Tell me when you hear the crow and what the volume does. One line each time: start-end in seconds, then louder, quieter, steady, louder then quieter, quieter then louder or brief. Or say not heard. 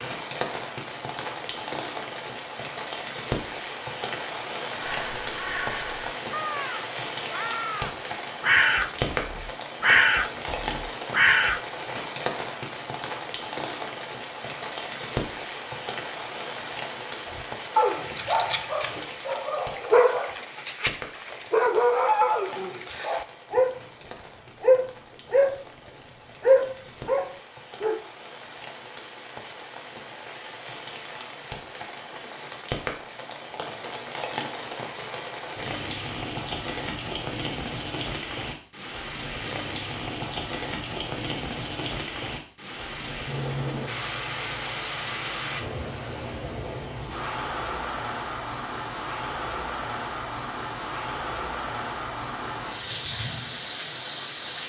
4.8-11.6 louder.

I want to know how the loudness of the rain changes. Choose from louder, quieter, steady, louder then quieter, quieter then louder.
quieter then louder.